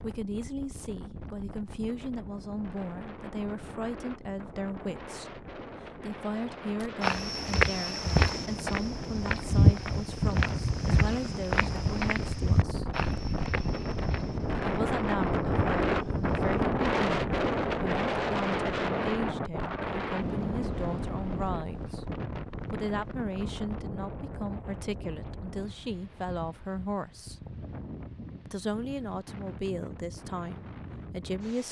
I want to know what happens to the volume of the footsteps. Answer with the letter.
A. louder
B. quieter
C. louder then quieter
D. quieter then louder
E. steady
B.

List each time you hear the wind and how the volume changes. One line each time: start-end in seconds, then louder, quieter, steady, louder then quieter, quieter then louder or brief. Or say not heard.
0.0-31.6 louder then quieter.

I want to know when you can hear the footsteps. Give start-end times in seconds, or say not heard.
6.8-16.6.